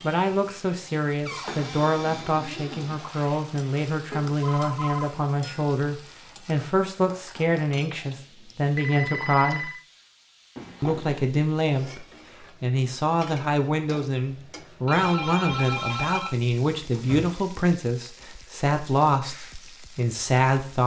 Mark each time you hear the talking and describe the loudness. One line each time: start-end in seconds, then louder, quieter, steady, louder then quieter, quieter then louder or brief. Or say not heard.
0.0-9.7 steady
10.8-20.8 steady.